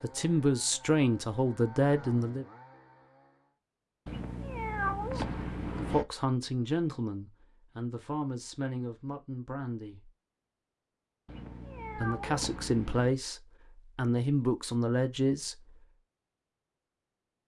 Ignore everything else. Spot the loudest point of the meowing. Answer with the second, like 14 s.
5 s.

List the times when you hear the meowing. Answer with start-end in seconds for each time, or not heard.
4.0-6.0, 11.2-13.2.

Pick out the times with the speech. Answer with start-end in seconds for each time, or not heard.
0.0-2.5, 5.0-10.1, 11.9-15.7.